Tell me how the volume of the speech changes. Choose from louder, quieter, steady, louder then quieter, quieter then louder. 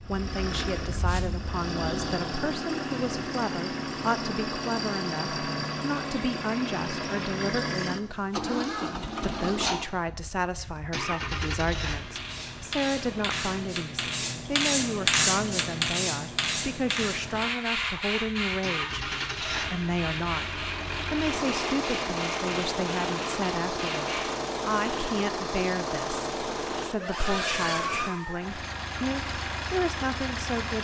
steady.